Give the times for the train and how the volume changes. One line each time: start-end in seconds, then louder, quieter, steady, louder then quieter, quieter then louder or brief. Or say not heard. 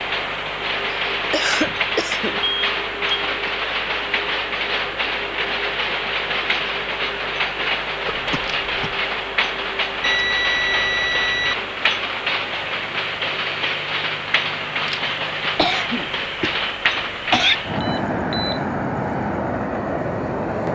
0.0-20.6 steady.